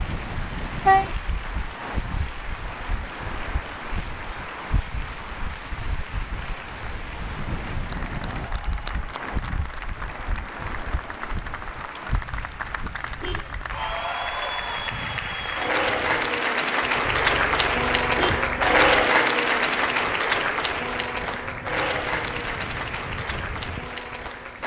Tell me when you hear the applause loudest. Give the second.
19 s.